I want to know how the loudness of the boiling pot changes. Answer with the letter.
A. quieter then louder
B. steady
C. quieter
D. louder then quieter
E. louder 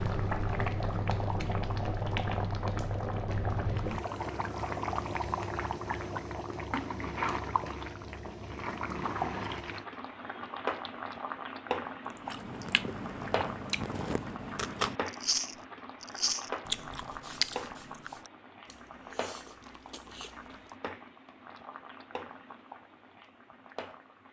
C.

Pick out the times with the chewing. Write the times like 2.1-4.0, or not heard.
12.1-20.7.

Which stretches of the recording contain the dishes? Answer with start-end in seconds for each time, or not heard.
not heard.